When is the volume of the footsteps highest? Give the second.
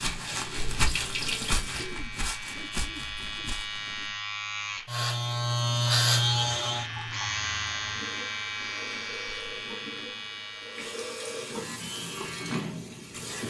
1 s.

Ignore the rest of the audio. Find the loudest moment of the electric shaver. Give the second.
6 s.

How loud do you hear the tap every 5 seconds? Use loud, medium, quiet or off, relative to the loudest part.
loud, medium, loud.